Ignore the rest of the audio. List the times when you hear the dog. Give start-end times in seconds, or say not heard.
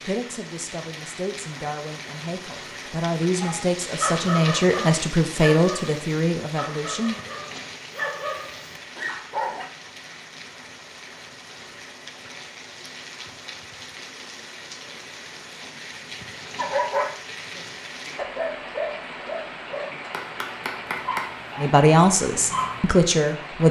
3.4-9.7, 16.6-22.8.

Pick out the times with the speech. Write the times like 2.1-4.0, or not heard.
0.0-7.2, 21.6-23.6.